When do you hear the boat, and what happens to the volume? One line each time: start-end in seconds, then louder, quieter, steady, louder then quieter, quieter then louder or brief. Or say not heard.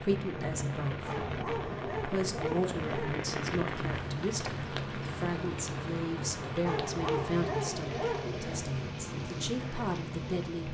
0.0-10.7 steady.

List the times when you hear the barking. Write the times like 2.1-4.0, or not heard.
1.1-3.2, 6.7-8.6.